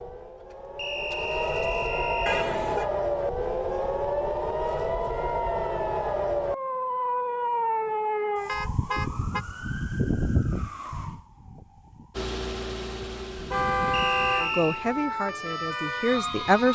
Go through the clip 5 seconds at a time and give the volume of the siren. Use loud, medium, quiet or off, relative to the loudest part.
loud, loud, medium, loud.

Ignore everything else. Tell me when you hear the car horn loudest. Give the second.
14 s.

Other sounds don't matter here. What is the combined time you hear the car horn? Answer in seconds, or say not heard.
3 s.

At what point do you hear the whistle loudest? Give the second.
14 s.